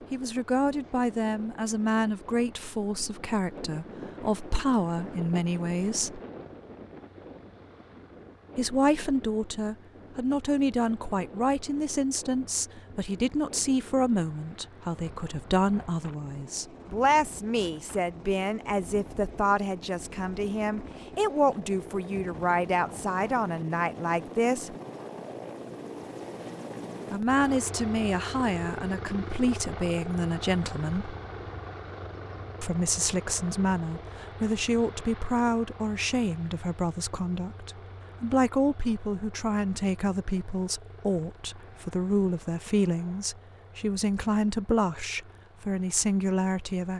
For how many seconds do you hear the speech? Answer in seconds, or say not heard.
41 s.